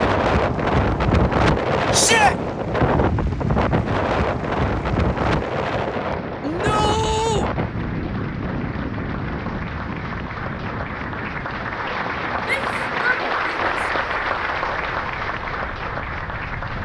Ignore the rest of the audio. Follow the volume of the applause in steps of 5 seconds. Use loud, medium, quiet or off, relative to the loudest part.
quiet, medium, loud, loud.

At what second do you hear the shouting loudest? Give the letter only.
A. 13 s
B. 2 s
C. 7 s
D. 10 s
B.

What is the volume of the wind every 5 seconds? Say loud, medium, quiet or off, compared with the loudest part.
loud, medium, quiet, quiet.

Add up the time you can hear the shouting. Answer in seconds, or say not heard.
3 s.